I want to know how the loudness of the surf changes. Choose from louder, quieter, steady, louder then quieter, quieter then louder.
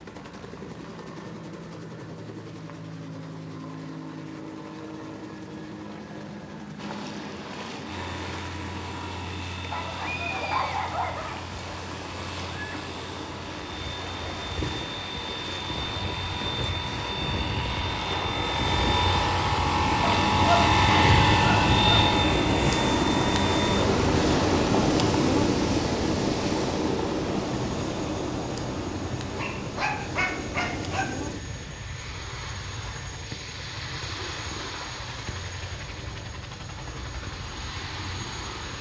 louder then quieter.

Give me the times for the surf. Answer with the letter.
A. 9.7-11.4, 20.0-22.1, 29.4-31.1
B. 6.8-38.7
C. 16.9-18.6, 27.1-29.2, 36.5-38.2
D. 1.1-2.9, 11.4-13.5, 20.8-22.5
B.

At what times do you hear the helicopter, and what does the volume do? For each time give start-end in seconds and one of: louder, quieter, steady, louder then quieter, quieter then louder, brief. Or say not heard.
0.0-38.7 louder then quieter.